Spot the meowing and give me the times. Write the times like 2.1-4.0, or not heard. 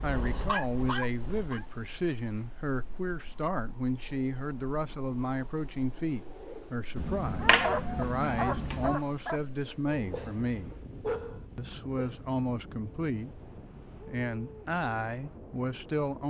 7.0-8.9.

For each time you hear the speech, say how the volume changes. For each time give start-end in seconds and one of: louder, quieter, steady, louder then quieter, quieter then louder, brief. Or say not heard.
0.0-10.8 steady
11.6-13.4 brief
14.0-16.2 brief.